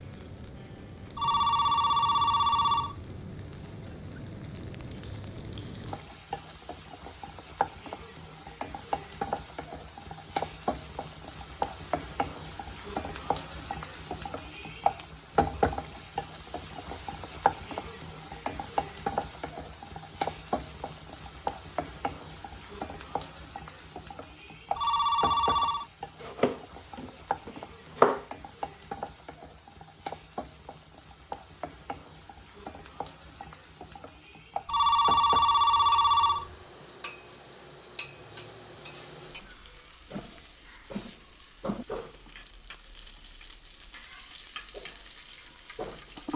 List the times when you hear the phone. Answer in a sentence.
The phone can be heard from 1.1 to 3.1 s, from 24.8 to 25.9 s and from 34.6 to 36.5 s.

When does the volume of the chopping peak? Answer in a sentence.
The loudest moment of the chopping is at 28 seconds.